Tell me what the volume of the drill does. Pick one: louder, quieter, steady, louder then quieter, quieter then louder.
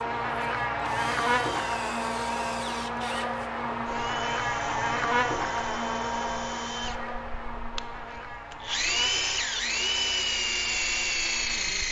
louder.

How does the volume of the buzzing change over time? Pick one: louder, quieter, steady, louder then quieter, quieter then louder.
quieter.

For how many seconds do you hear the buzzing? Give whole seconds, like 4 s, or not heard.
12 s.